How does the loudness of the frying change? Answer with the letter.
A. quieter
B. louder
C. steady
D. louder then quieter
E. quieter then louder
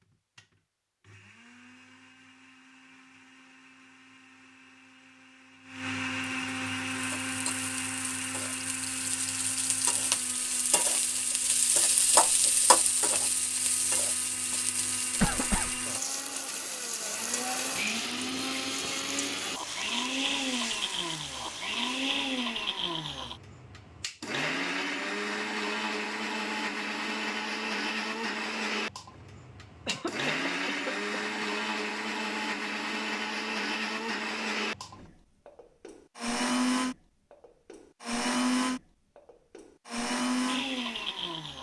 D.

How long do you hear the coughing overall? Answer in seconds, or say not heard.
2 s.